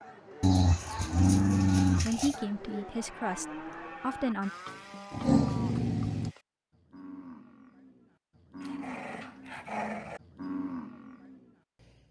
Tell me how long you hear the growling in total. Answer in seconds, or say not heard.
5 s.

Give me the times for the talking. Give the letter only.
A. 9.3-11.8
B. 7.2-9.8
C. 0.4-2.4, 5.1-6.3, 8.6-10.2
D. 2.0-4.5
D.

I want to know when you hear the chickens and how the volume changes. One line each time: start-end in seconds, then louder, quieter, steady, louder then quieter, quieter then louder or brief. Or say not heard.
not heard.